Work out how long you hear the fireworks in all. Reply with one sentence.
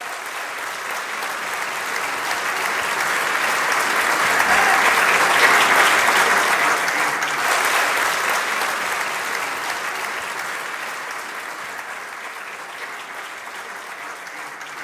You can't hear the fireworks here.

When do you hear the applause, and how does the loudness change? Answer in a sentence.
The applause can be heard from 0.0 to 14.7 s, getting louder then quieter.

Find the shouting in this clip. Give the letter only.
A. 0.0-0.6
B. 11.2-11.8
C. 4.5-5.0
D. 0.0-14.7
C.